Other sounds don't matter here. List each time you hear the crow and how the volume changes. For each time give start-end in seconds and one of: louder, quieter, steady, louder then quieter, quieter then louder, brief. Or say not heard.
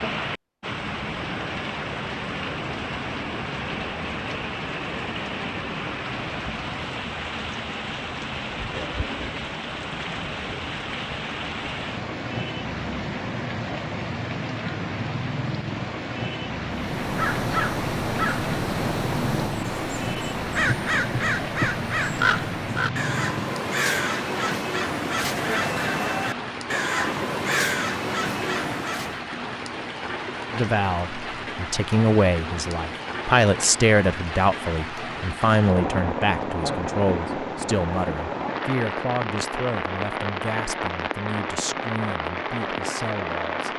16.8-29.2 steady.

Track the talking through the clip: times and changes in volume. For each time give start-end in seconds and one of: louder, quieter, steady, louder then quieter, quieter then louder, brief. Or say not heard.
30.5-43.7 quieter.